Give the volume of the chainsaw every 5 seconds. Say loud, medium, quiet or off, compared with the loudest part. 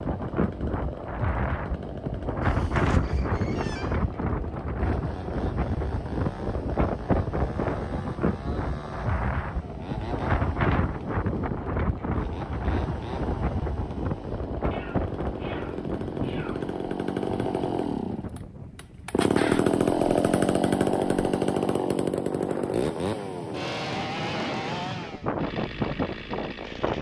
quiet, quiet, quiet, loud, loud, quiet.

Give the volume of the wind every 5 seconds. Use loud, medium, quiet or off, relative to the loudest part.
loud, loud, loud, medium, medium, loud.